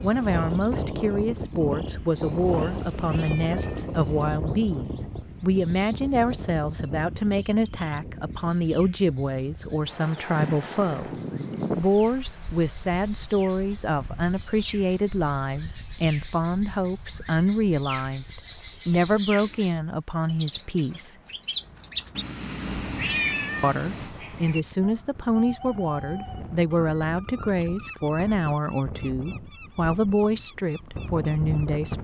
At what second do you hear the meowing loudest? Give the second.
23 s.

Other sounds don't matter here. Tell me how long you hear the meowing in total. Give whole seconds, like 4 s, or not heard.
4 s.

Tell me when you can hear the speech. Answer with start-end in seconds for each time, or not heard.
0.0-21.1, 23.6-31.9.